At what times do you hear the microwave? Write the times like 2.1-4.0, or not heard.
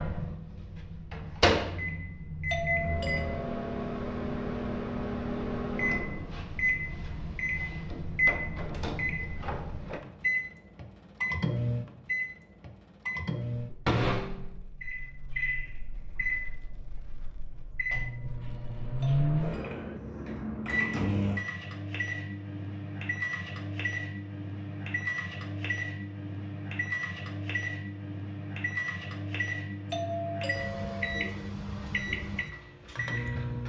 0.0-33.6.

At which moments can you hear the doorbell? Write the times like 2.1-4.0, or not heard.
2.5-3.8, 19.0-19.6, 29.9-31.4.